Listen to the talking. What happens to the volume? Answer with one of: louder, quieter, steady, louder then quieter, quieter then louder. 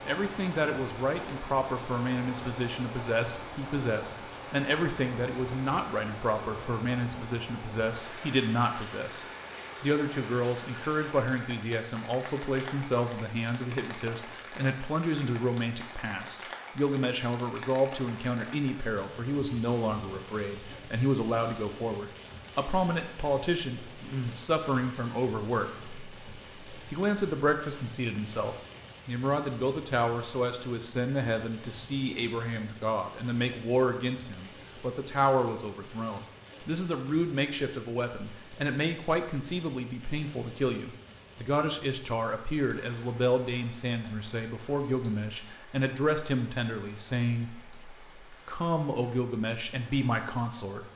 steady.